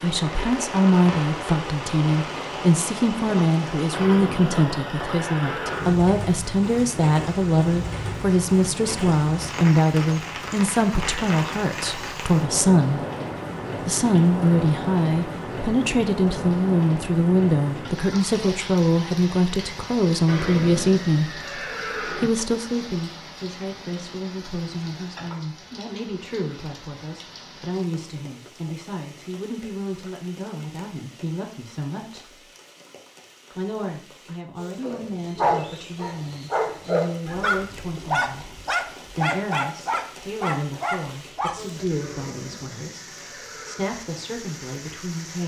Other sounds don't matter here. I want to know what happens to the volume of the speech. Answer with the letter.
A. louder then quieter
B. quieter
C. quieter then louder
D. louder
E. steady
B.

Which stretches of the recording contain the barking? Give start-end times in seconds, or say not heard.
34.8-42.1.